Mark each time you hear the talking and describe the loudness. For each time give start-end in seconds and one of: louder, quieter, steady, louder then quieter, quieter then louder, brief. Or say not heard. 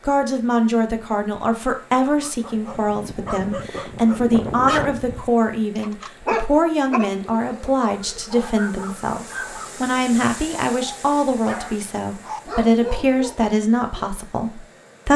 0.1-15.1 steady.